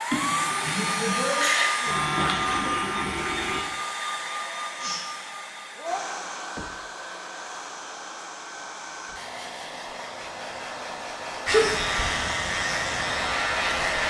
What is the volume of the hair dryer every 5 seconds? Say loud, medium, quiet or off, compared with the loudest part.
loud, medium, loud.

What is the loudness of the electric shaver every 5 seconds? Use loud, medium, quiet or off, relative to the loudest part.
loud, off, loud.